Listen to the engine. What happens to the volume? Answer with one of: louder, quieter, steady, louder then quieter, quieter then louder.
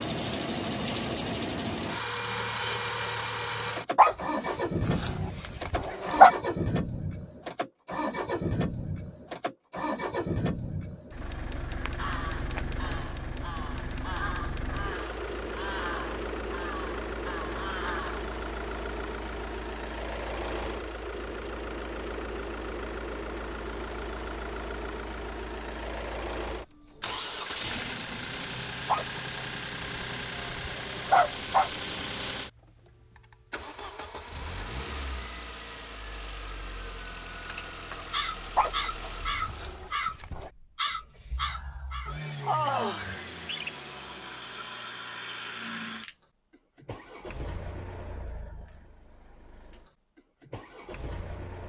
quieter.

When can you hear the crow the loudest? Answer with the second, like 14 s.
43 s.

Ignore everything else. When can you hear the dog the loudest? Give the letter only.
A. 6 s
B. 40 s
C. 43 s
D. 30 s
A.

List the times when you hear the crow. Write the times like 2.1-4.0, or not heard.
11.7-18.3, 37.5-43.7.